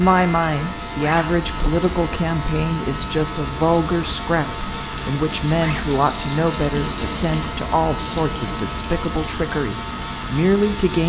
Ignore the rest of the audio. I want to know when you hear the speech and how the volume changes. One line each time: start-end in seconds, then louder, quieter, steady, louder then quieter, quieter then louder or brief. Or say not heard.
0.0-11.0 steady.